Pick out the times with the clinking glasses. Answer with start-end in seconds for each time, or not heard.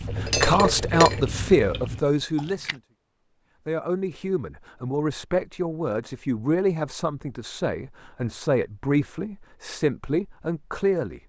0.1-1.4.